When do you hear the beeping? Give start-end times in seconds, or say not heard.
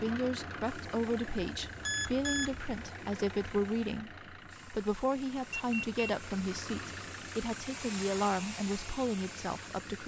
1.4-2.9, 5.5-6.0.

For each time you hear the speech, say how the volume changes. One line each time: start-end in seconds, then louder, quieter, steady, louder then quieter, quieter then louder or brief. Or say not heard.
0.0-10.0 steady.